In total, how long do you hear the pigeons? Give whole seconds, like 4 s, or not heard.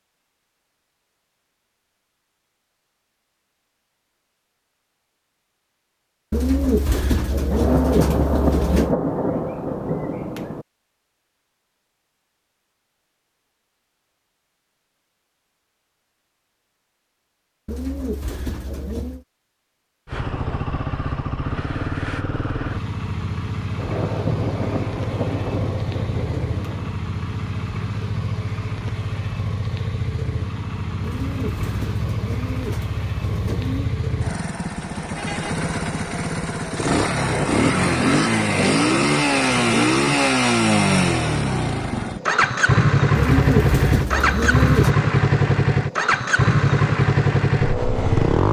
9 s.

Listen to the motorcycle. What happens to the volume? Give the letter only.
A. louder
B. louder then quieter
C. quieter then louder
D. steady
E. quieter
A.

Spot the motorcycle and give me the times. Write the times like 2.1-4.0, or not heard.
20.1-48.4.